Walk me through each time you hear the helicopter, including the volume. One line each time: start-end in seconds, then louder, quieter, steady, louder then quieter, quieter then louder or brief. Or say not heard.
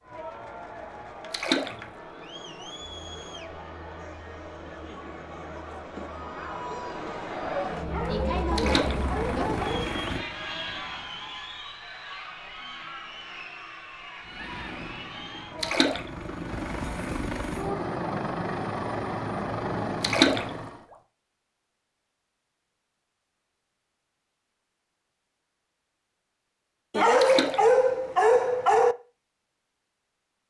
8.8-11.4 brief
14.2-20.9 louder.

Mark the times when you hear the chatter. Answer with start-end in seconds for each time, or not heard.
0.0-15.9.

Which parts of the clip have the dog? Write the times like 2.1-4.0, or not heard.
7.8-9.8, 26.9-28.9.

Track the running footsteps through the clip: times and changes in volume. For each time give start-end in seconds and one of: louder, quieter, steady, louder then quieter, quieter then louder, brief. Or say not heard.
not heard.